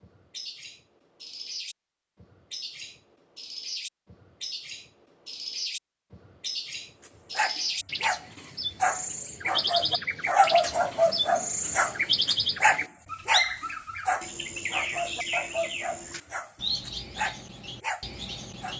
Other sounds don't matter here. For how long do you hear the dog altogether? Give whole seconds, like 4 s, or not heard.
12 s.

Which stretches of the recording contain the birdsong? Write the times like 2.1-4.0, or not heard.
0.0-18.7.